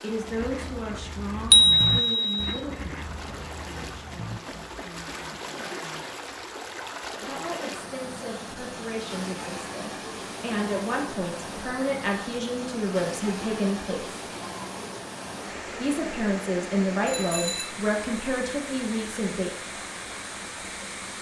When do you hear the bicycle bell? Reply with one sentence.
The bicycle bell can be heard from 1.5 to 2.4 s and from 17.1 to 17.7 s.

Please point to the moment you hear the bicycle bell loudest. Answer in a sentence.
The volume of the bicycle bell peaks at 2 seconds.